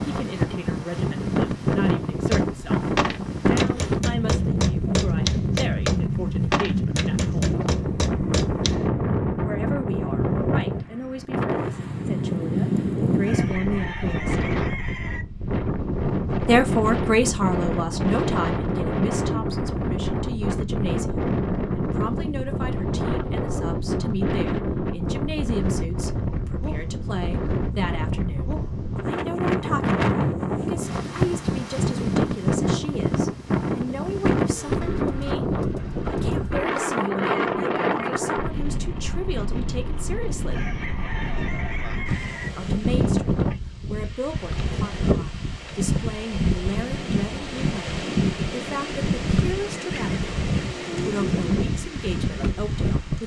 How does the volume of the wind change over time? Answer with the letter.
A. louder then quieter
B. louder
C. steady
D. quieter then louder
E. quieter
C.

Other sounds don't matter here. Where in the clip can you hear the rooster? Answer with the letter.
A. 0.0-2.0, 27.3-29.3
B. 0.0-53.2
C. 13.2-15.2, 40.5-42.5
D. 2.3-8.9
C.